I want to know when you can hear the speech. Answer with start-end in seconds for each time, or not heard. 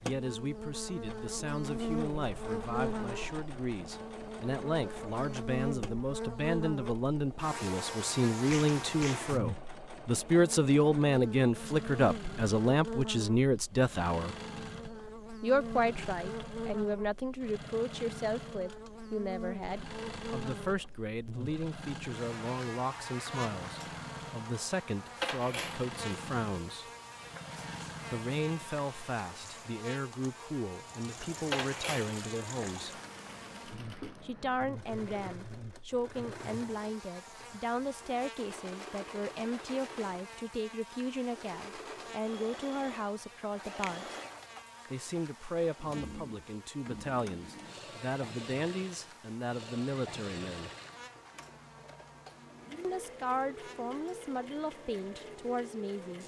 0.0-14.3, 15.4-26.9, 28.1-33.0, 34.2-44.1, 44.9-50.7, 52.8-56.2.